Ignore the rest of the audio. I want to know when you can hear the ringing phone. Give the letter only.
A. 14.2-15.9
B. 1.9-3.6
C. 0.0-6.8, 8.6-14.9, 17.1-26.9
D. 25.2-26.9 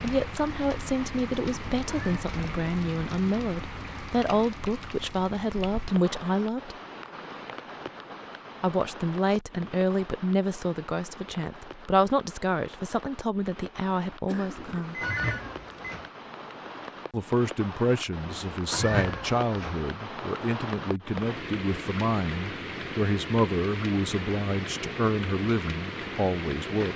A.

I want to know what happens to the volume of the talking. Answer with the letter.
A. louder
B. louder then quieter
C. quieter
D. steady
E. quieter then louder
D.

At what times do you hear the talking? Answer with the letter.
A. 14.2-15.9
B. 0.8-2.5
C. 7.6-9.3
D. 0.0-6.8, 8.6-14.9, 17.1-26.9
D.